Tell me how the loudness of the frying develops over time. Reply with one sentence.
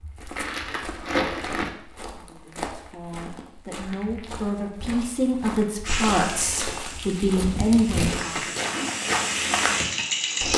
The volume of the frying goes down, then up.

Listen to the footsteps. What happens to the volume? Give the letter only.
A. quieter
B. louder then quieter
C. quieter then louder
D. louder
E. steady
D.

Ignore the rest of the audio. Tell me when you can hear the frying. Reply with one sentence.
The frying can be heard from 5.8 to 10.5 s.